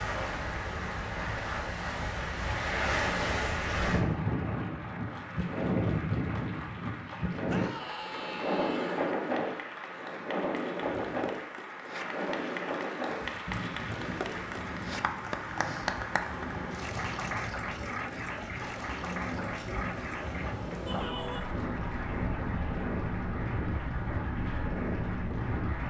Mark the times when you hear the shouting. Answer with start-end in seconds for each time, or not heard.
7.5-9.2, 20.9-21.6.